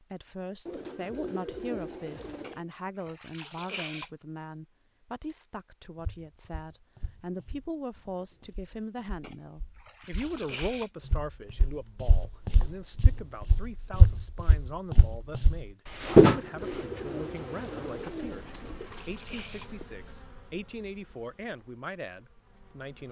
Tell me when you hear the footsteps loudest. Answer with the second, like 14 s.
16 s.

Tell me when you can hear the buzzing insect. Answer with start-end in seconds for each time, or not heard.
16.6-23.0.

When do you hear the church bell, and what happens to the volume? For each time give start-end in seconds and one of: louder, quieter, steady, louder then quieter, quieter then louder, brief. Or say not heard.
not heard.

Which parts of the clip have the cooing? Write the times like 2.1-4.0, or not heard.
0.7-2.6, 16.2-18.9.